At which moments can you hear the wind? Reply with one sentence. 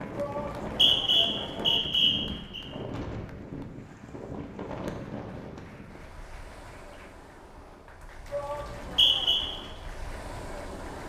The wind can be heard from 0.0 to 11.0 s.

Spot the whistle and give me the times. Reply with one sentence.
You can hear the whistle from 0.7 to 2.6 s and from 8.6 to 9.4 s.